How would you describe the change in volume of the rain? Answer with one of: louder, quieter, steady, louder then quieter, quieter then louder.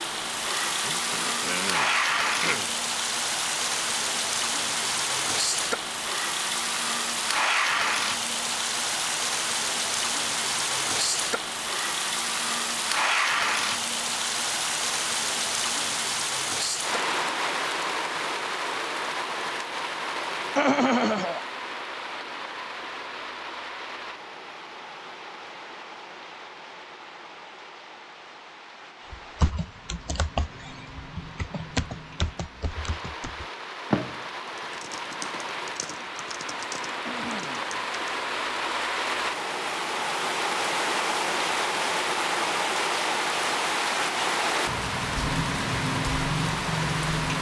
quieter then louder.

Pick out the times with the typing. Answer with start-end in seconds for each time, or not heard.
29.1-38.0.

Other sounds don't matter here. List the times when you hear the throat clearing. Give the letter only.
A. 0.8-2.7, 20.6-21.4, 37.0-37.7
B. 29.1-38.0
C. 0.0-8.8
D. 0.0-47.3
A.